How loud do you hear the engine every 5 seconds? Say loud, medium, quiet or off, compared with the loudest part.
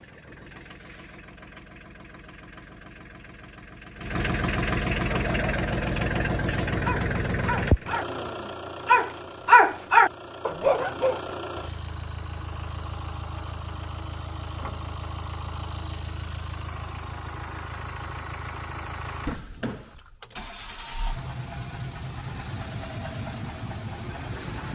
medium, loud, medium, medium, medium.